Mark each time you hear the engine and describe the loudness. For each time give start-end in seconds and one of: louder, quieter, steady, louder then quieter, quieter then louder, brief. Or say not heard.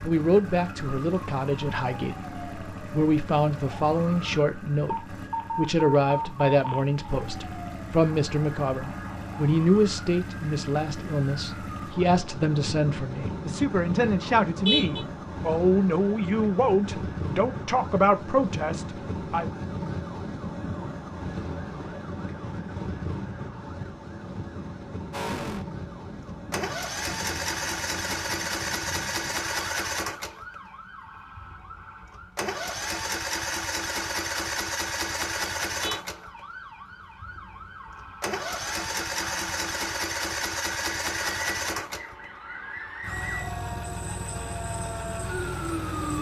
25.1-46.1 quieter.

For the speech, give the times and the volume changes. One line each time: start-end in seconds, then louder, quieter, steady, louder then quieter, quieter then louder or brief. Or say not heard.
0.0-19.5 steady.